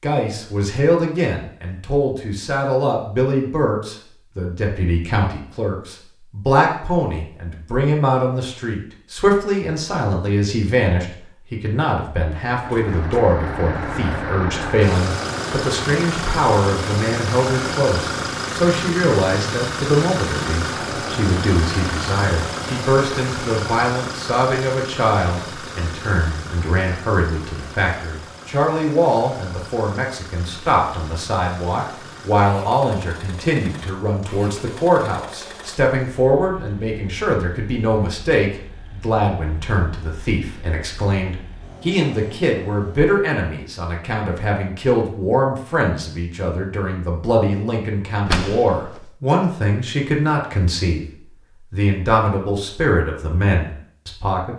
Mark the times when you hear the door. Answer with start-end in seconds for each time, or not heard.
12.7-13.3, 48.2-49.2.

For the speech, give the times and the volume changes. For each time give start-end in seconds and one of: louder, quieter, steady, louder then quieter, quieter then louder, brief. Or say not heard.
0.0-51.0 steady
51.7-54.5 brief.